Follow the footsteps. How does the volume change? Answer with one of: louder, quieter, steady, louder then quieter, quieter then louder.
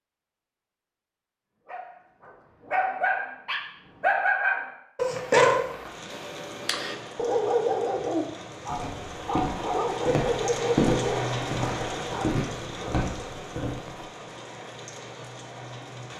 louder then quieter.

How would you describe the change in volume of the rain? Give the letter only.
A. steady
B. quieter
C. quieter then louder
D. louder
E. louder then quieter
E.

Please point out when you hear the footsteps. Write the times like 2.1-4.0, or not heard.
8.7-14.0.